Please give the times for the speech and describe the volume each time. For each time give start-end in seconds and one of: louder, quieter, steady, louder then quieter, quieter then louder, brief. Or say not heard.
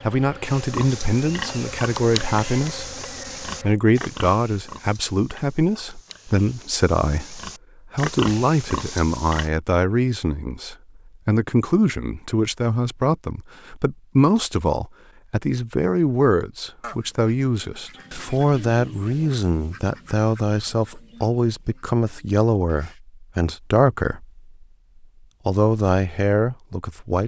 0.0-24.4 steady
25.4-27.2 brief.